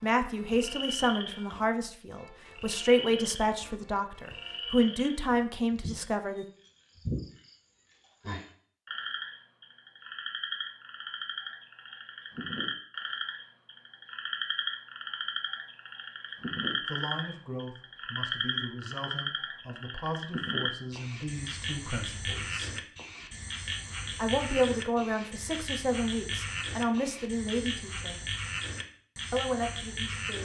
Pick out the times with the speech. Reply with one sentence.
The speech can be heard from 0.0 to 6.5 s, from 16.9 to 22.8 s, from 24.1 to 28.2 s and from 29.3 to 30.3 s.